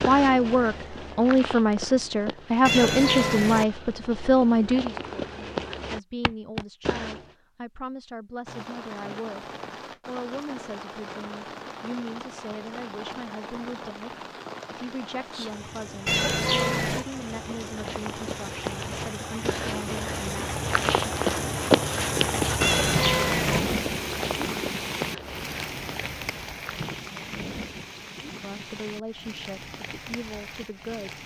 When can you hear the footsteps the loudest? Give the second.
22 s.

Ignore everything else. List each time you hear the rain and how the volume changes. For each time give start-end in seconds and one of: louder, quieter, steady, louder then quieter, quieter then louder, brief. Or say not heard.
8.4-31.2 louder then quieter.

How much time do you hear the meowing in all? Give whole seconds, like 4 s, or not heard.
3 s.